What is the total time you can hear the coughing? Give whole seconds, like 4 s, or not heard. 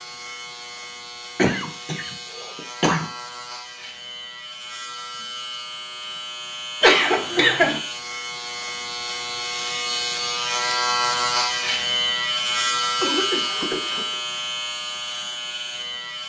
4 s.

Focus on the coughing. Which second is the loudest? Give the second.
7 s.